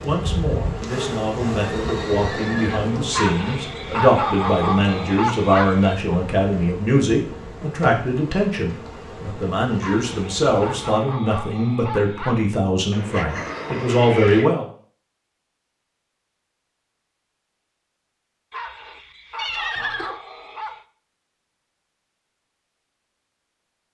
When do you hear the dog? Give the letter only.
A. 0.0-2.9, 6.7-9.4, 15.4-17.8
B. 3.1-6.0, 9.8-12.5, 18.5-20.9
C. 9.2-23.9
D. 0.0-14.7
B.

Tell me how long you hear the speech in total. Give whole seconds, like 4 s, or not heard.
15 s.